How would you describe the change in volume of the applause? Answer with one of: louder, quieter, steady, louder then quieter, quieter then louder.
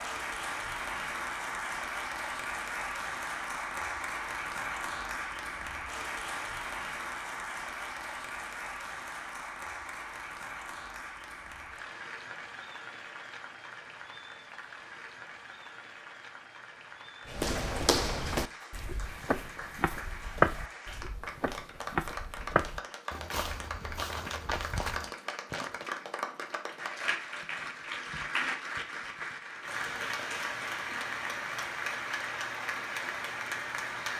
quieter then louder.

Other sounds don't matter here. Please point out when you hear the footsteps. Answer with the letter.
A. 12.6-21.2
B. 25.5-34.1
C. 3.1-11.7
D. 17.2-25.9
D.